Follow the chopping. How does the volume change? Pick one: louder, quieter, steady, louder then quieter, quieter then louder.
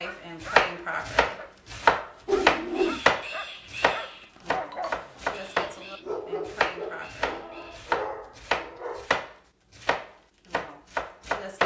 quieter.